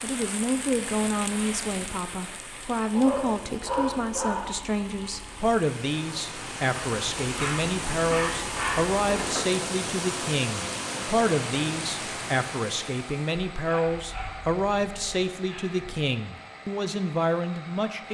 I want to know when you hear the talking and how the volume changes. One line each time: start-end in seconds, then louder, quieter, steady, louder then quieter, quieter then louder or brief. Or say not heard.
0.0-18.0 steady.